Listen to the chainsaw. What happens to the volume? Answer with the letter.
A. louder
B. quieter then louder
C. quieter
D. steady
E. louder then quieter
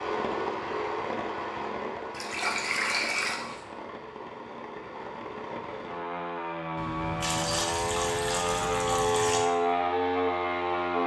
B.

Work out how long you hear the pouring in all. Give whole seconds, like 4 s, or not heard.
4 s.